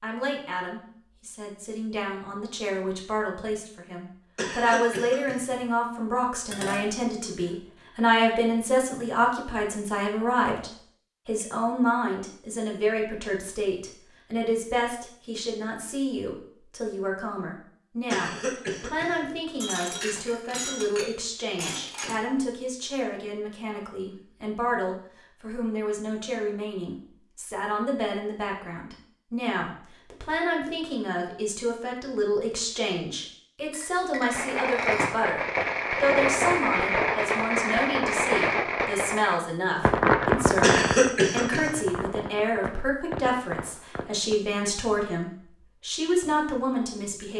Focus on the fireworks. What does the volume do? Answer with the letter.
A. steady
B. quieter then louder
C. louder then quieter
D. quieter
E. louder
D.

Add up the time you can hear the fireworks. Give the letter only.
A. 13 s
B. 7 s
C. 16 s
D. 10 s
D.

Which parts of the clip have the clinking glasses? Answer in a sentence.
You can hear the clinking glasses from 6.5 to 7.5 s, from 19.6 to 22.1 s and from 33.7 to 35.1 s.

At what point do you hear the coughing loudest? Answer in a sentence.
The loudest moment of the coughing is at 41 seconds.